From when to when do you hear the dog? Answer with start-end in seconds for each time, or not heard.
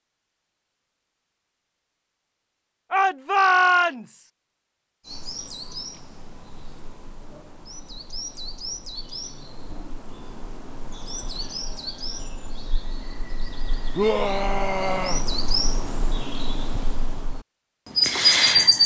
not heard.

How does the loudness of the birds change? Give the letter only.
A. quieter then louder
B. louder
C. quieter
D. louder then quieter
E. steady
B.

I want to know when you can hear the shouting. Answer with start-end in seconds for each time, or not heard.
2.9-4.3, 13.9-15.2.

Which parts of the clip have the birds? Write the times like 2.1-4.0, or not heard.
5.0-18.8.